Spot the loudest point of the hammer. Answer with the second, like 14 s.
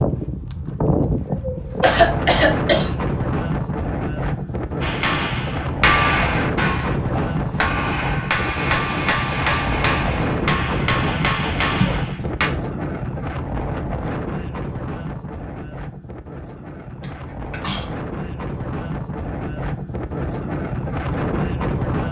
6 s.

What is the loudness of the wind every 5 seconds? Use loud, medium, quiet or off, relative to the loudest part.
loud, loud, loud, medium, loud.